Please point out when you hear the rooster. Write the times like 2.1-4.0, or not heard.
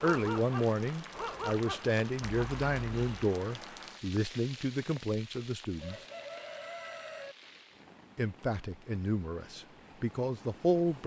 5.8-7.3.